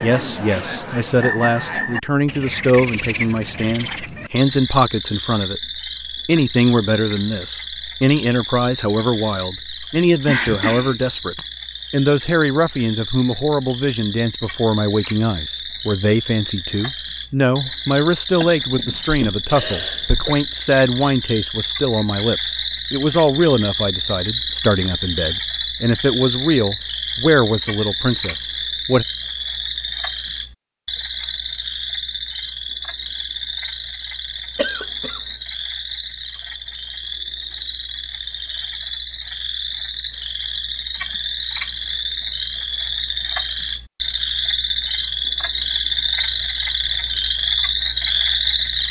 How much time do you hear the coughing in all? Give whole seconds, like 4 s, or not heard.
4 s.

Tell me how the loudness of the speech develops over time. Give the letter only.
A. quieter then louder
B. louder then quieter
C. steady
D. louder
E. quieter
C.